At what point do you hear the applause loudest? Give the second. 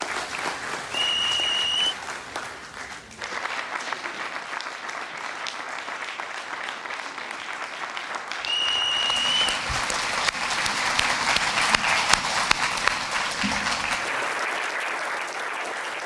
12 s.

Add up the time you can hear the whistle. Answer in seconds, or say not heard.
2 s.